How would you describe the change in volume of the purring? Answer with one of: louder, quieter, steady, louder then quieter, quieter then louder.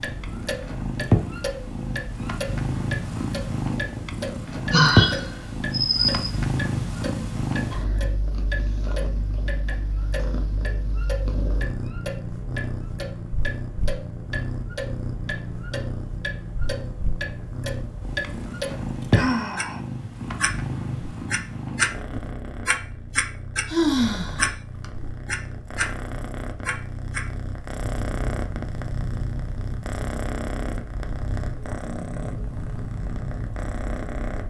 quieter.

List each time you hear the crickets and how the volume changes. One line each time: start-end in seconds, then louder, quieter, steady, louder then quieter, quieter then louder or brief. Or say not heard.
not heard.